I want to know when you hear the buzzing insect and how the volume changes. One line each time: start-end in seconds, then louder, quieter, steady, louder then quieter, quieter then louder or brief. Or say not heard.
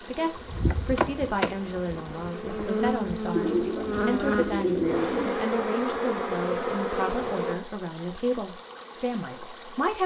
0.0-9.9 quieter.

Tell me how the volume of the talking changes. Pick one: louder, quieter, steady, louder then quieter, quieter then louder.
steady.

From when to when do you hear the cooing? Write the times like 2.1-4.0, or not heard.
3.3-5.3.